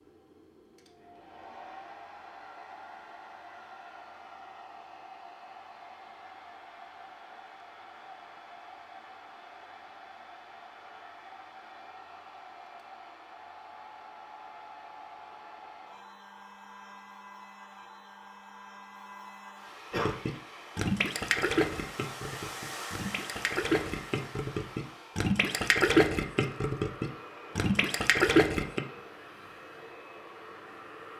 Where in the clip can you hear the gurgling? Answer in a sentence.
You can hear the gurgling from 19.9 to 28.8 s.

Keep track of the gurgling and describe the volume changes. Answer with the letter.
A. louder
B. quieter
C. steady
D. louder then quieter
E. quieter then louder
E.